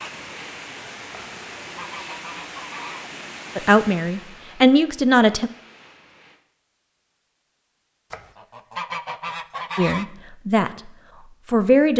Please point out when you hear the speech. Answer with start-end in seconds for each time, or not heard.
3.5-5.5, 9.8-11.9.